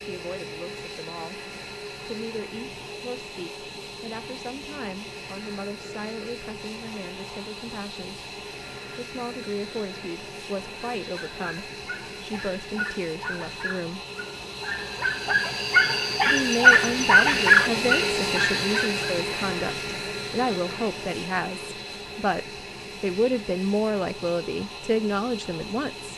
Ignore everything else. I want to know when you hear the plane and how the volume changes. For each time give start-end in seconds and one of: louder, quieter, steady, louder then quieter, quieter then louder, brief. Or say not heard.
0.0-26.1 louder then quieter.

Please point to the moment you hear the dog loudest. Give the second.
17 s.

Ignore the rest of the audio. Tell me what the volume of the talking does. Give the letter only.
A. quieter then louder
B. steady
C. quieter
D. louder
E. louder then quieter
D.